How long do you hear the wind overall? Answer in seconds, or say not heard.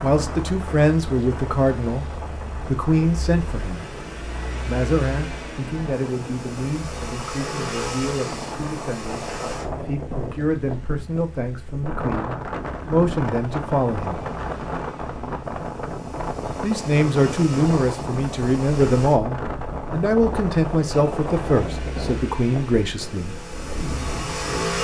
25 s.